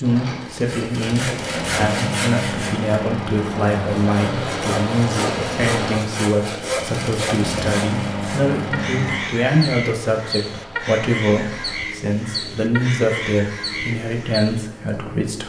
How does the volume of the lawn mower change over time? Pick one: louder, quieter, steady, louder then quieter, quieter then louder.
quieter.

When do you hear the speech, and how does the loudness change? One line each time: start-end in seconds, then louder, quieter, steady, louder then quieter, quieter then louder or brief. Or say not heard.
0.0-15.4 steady.